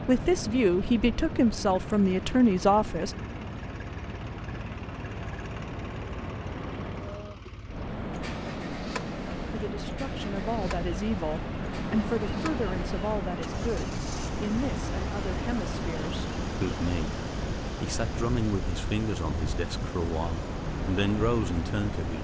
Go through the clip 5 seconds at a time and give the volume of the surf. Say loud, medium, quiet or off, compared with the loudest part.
medium, loud, loud, loud, loud.